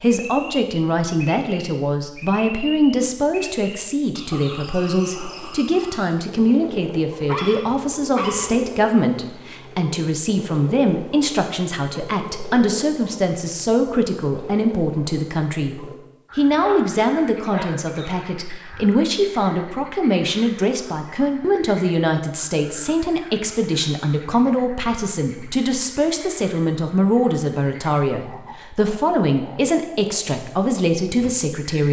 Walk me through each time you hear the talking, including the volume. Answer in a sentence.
The talking can be heard from 0.0 to 31.8 s, at a steady volume.